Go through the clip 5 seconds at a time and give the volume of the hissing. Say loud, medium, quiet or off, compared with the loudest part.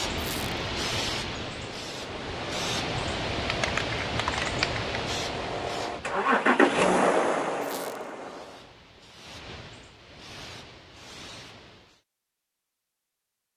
loud, medium, quiet.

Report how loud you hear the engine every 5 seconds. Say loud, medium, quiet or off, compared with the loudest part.
quiet, loud, off.